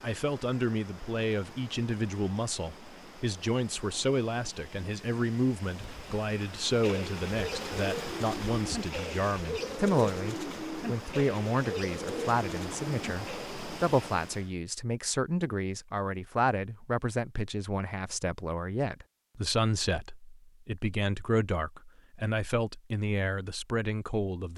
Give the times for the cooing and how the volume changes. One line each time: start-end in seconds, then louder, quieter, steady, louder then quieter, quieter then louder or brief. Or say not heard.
6.8-13.7 steady.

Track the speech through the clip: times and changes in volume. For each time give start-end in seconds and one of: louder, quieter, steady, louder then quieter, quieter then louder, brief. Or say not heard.
0.0-24.5 steady.